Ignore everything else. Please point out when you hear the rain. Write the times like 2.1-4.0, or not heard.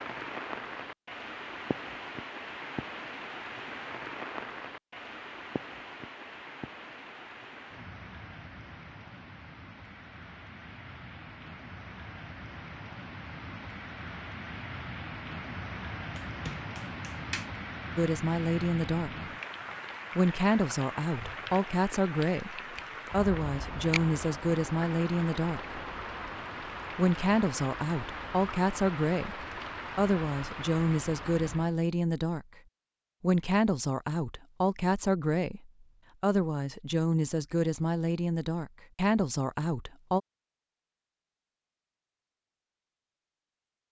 0.0-31.8.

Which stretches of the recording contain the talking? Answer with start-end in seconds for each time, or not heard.
17.9-19.3, 20.1-25.8, 26.9-32.5, 33.2-40.2.